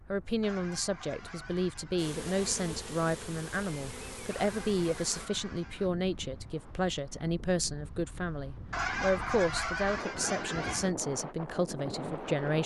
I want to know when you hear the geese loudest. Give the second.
9 s.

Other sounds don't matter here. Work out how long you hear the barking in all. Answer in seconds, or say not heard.
not heard.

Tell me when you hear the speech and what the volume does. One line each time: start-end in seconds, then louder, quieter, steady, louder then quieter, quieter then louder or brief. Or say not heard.
0.1-12.6 steady.